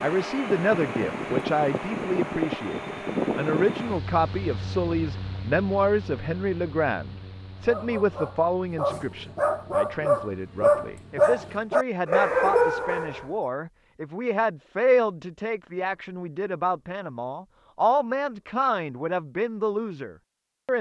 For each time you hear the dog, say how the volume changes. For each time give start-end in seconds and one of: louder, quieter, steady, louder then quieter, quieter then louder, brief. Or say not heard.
7.7-13.2 louder.